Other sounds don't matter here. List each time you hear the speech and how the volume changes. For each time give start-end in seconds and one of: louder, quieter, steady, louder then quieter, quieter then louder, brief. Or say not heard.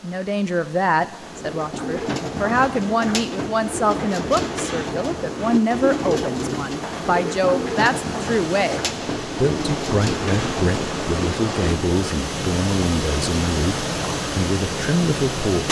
0.0-15.6 steady.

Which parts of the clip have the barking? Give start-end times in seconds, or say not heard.
not heard.